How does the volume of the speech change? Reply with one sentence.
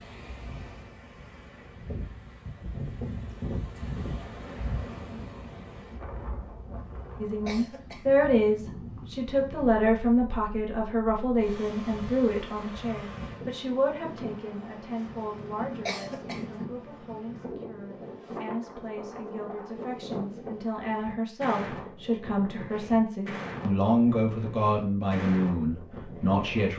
The loudness of the speech goes down, then up.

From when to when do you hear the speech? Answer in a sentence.
The speech can be heard from 7.2 to 26.7 s.